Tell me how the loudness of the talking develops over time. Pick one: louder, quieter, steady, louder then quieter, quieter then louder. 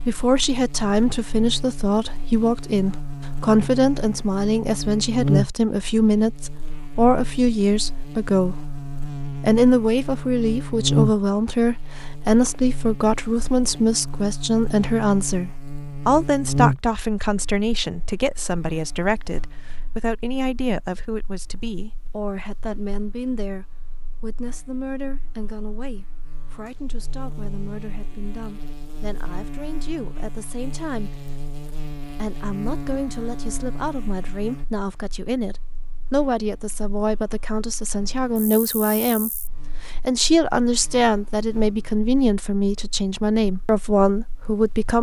quieter then louder.